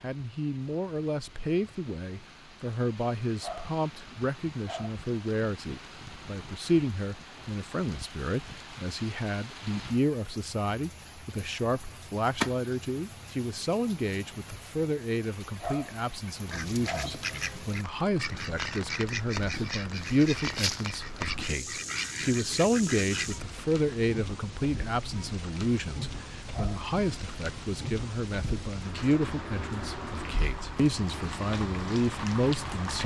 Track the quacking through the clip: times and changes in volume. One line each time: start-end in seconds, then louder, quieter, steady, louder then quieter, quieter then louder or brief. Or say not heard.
16.4-23.4 steady.